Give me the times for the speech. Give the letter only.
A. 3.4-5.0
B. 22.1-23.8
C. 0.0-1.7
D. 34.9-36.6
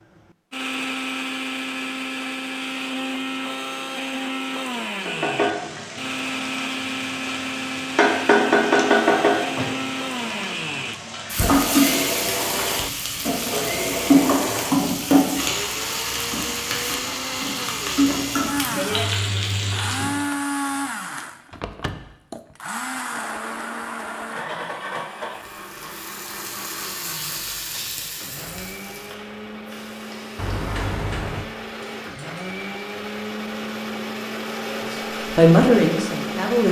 D.